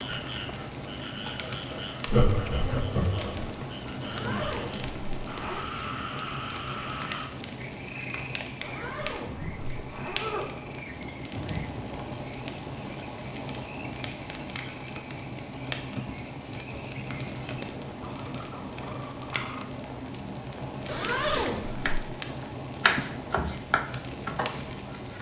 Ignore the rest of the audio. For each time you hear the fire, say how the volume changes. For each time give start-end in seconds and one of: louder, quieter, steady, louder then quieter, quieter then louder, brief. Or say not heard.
0.0-25.1 steady.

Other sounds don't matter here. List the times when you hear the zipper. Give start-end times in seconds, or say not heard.
4.0-5.7, 8.6-10.5, 20.9-21.9.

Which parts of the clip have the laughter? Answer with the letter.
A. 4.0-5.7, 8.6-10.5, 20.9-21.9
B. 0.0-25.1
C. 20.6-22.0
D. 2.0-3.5
D.